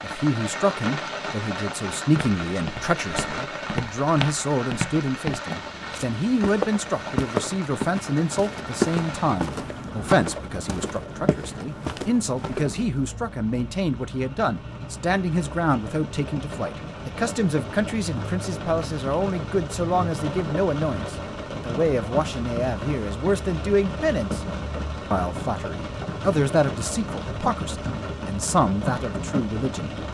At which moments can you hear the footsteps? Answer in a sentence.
The footsteps can be heard from 2.1 to 12.9 s.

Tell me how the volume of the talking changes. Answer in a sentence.
The loudness of the talking stays about the same.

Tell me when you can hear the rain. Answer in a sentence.
You can hear the rain from 0.0 to 30.1 s.